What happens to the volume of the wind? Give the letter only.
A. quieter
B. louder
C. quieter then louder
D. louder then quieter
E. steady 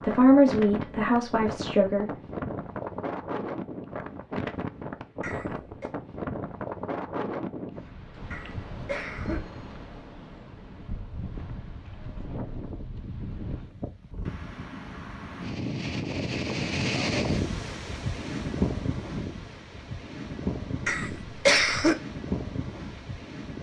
C.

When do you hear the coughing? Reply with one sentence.
The coughing can be heard from 5.2 to 5.9 s, from 8.3 to 9.4 s and from 20.9 to 21.9 s.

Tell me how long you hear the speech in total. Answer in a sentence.
The speech can be heard for 2 seconds in total.